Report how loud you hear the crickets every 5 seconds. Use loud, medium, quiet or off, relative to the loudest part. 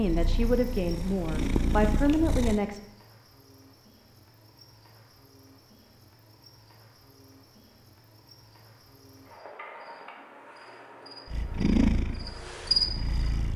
quiet, quiet, loud.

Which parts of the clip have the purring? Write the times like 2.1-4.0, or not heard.
0.0-2.6, 11.2-13.5.